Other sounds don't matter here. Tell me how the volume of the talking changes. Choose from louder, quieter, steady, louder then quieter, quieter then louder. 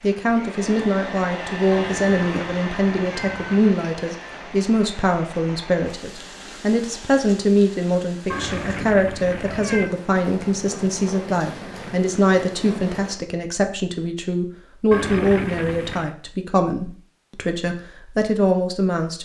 steady.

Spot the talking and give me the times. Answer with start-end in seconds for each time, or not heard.
0.0-19.1.